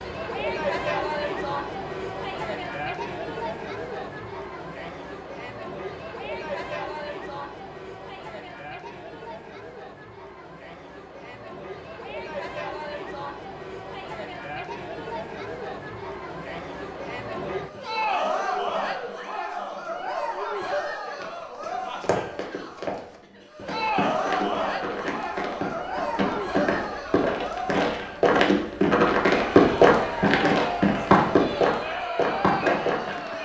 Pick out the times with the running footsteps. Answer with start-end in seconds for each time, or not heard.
21.1-33.4.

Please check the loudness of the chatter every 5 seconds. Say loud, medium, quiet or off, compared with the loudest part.
loud, medium, medium, loud, loud, loud, loud.